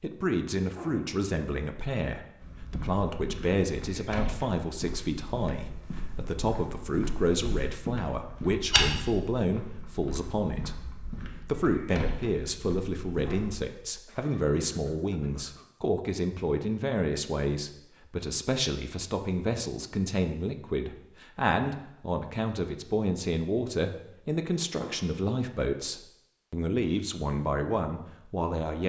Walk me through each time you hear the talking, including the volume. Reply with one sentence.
You can hear the talking from 0.0 to 28.8 s, at a steady volume.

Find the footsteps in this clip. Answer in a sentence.
You can hear the footsteps from 2.4 to 13.6 s.